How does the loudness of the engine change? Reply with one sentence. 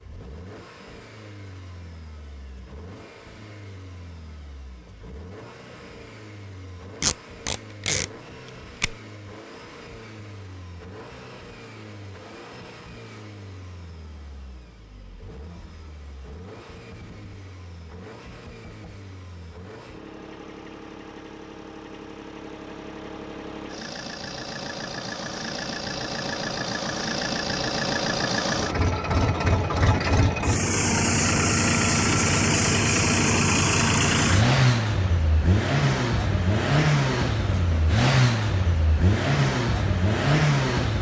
The loudness of the engine goes up.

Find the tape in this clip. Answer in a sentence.
You can hear the tape from 7.0 to 8.9 s.